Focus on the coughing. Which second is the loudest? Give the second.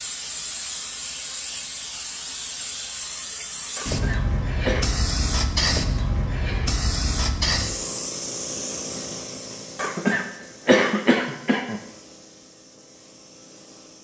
11 s.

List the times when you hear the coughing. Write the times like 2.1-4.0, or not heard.
3.8-4.8, 9.8-11.8.